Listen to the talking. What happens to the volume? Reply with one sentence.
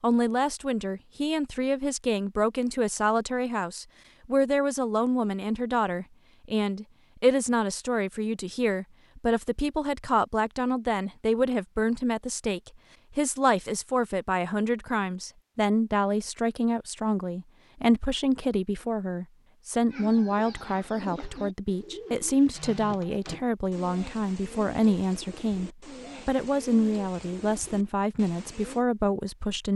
The loudness of the talking stays about the same.